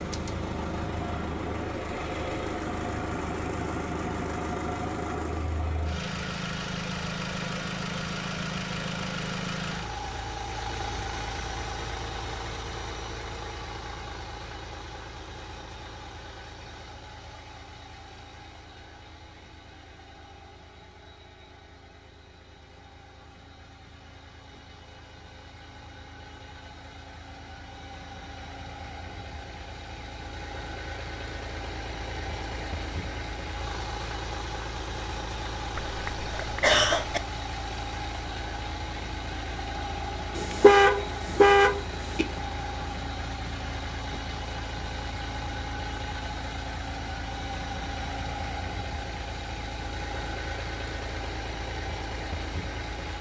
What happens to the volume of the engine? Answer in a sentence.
The volume of the engine goes down, then up.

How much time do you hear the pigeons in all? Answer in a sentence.
You can't hear the pigeons here.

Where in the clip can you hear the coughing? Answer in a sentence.
You can hear the coughing from 35.8 to 37.2 s.